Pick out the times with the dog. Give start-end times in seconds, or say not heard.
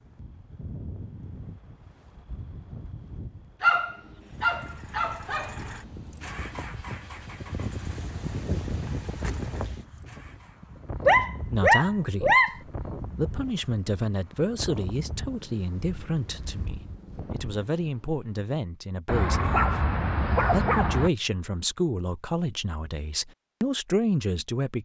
3.6-5.5, 11.0-12.6, 19.1-21.1.